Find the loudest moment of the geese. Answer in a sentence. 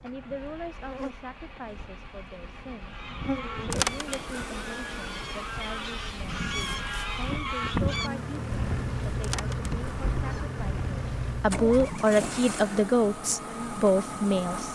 The volume of the geese peaks at 8 seconds.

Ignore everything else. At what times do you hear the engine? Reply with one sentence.
The engine can be heard from 0.0 to 14.7 s.